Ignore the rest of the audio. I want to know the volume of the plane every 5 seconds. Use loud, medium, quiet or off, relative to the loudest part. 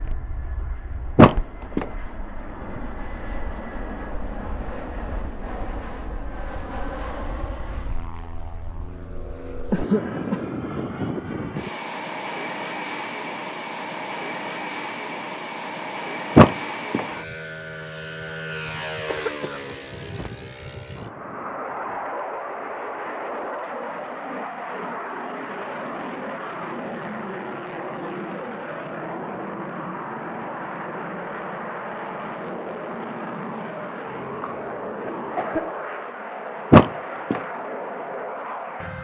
medium, medium, loud, loud, loud, loud, loud, loud.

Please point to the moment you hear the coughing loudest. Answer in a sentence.
The loudest moment of the coughing is at 10 seconds.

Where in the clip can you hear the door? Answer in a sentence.
You can hear the door from 1.1 to 1.9 s, from 16.4 to 17.1 s and from 36.7 to 37.4 s.